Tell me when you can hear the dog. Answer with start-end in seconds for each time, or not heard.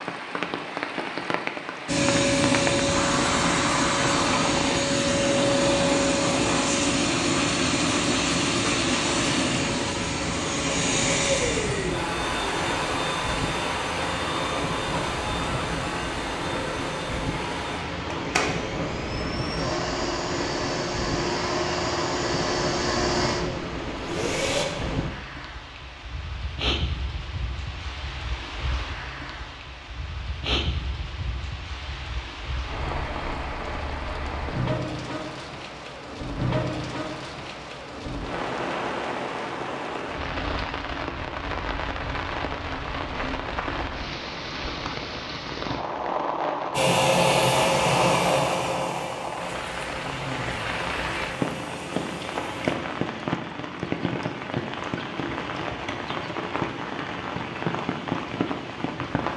not heard.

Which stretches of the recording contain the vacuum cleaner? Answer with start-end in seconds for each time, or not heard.
1.9-24.6, 46.7-52.8.